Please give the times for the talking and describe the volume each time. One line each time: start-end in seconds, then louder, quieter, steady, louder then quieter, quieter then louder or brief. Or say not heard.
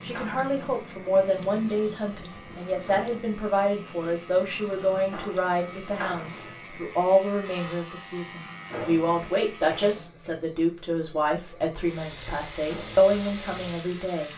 0.0-14.3 steady.